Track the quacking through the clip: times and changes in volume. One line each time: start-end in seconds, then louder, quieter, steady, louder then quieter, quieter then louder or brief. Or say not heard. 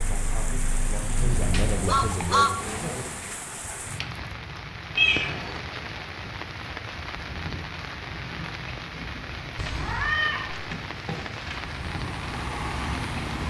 not heard.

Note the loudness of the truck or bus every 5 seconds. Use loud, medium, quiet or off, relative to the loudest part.
loud, off, medium.